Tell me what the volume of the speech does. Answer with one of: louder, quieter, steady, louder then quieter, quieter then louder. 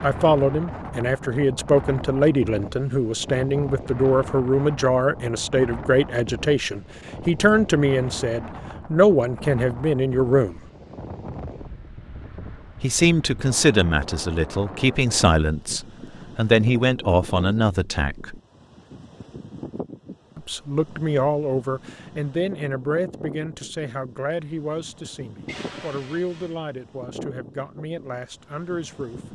quieter.